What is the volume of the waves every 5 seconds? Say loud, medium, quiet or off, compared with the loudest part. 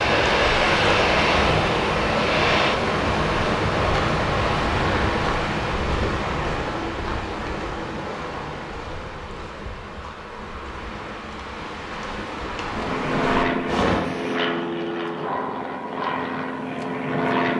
loud, medium, medium, off.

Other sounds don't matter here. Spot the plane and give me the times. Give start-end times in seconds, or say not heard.
0.0-2.8, 12.7-17.5.